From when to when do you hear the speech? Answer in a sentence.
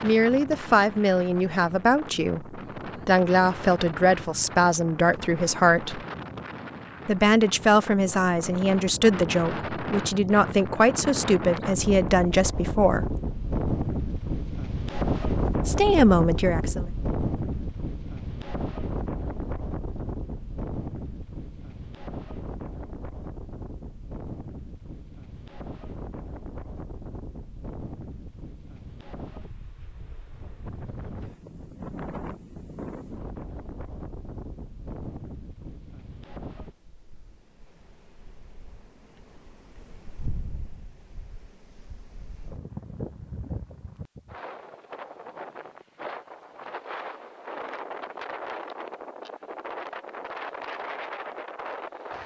The speech can be heard from 0.0 to 6.0 s, from 7.0 to 13.2 s and from 15.7 to 16.9 s.